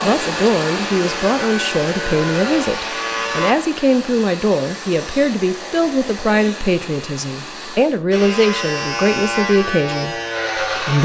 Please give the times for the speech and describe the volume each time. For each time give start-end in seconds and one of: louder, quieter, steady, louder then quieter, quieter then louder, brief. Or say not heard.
0.0-11.0 steady.